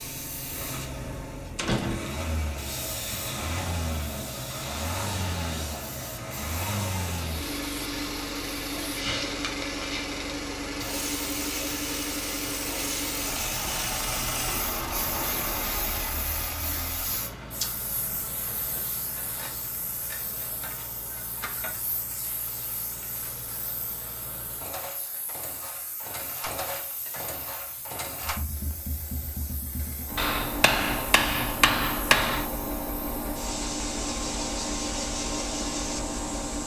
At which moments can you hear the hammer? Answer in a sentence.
You can hear the hammer from 30.1 to 32.5 s.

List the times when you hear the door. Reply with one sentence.
The door can be heard from 1.6 to 2.3 s.